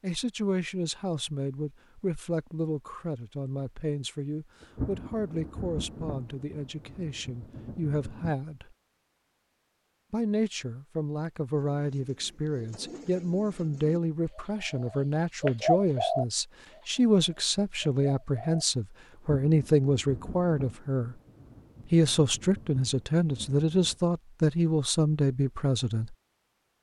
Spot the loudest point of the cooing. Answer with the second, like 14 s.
16 s.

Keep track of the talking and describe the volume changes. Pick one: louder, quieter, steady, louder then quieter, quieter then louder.
louder.